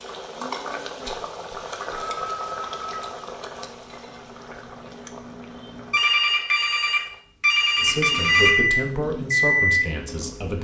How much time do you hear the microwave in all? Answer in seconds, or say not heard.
6 s.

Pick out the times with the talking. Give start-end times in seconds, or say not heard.
7.8-10.5.